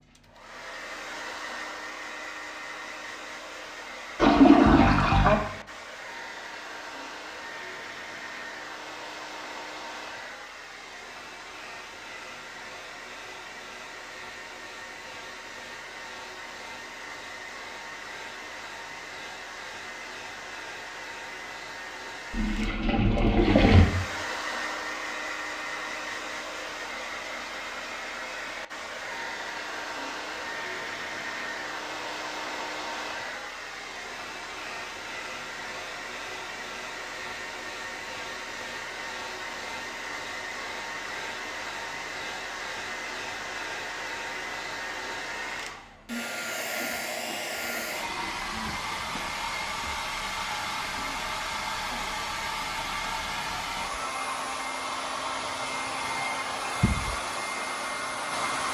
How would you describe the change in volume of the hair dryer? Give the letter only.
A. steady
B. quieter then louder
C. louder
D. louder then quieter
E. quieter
C.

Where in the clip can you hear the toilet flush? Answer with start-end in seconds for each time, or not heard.
4.2-5.3, 22.3-23.9, 46.8-49.1.